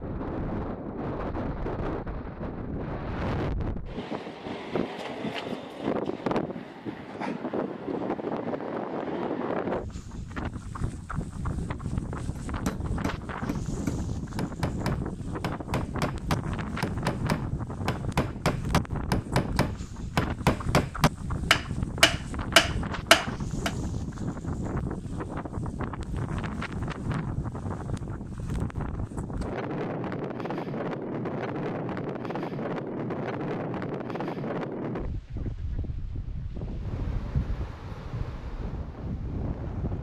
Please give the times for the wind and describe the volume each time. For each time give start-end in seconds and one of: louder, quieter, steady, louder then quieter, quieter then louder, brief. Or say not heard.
0.0-39.9 steady.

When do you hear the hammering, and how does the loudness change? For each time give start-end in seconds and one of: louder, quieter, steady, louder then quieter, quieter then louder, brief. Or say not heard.
12.3-23.7 louder.